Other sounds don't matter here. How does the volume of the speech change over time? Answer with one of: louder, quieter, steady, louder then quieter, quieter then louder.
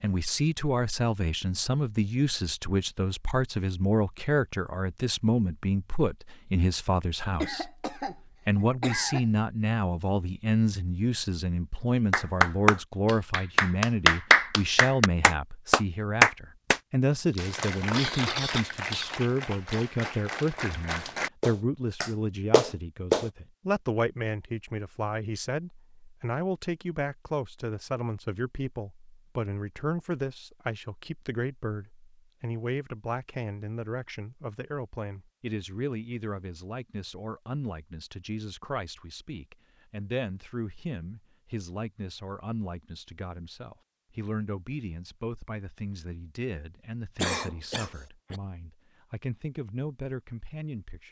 quieter.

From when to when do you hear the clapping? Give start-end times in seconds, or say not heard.
12.1-23.3.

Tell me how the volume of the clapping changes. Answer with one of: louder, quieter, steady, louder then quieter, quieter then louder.
quieter then louder.